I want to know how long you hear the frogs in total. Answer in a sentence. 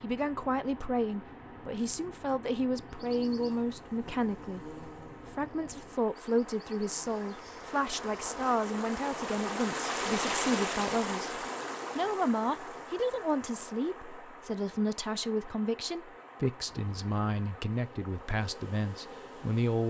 You can't hear the frogs here.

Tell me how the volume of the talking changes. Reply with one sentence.
The volume of the talking stays about the same.